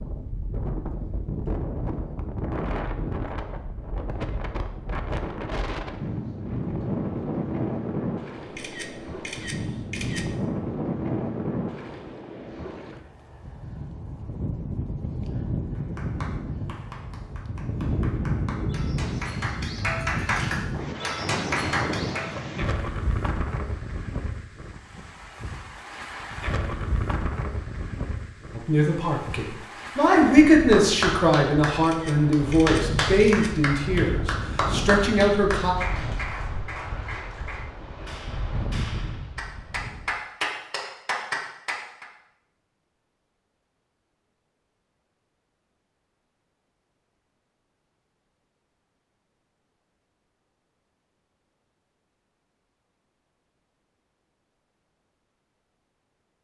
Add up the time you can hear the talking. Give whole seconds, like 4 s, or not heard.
7 s.